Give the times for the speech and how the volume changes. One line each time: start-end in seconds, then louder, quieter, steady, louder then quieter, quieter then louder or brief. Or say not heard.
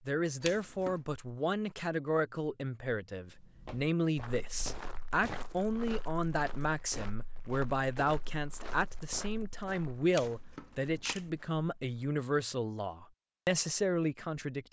0.1-14.6 steady.